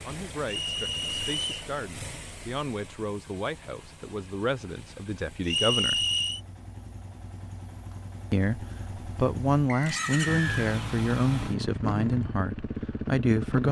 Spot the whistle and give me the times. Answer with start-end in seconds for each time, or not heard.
0.5-1.7, 5.5-6.4, 9.7-10.7.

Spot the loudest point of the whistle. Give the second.
6 s.